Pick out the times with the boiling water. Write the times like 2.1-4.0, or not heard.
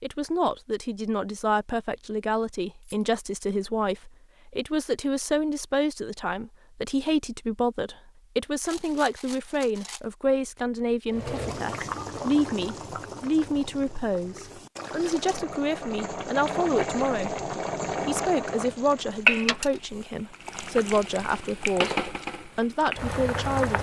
11.1-23.7.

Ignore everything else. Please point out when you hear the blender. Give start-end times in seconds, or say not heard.
not heard.